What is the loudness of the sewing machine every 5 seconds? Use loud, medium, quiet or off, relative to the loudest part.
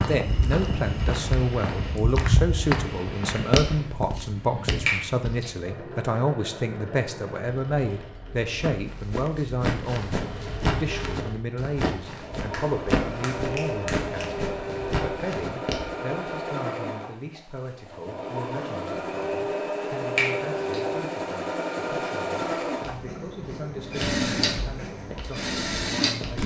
medium, medium, medium, loud, loud, loud.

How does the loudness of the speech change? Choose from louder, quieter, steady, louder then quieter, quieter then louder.
quieter.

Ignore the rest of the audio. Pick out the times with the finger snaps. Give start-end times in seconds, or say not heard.
4.8-5.5, 12.3-14.2, 20.1-20.9.